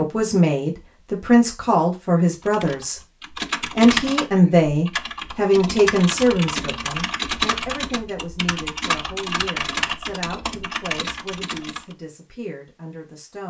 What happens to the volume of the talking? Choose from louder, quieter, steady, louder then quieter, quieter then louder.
quieter.